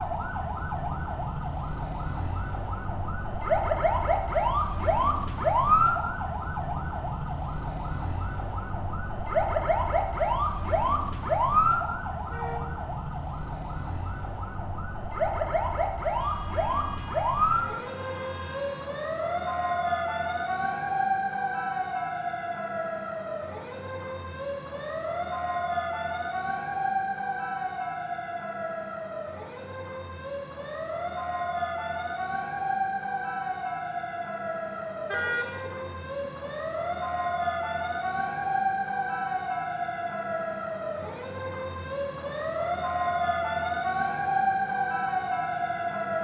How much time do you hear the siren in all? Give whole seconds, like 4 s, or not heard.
46 s.